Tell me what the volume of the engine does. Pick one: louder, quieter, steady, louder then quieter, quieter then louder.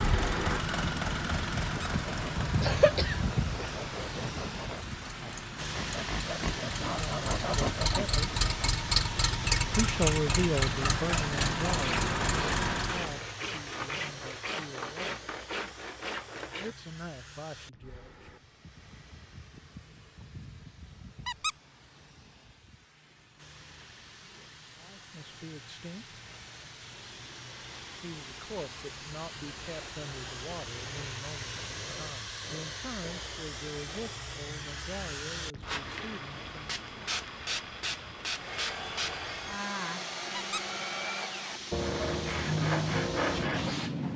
quieter then louder.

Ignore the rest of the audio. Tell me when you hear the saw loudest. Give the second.
43 s.